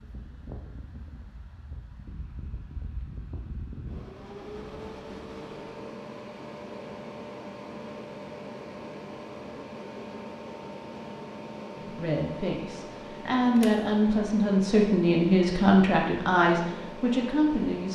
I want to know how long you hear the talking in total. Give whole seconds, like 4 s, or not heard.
6 s.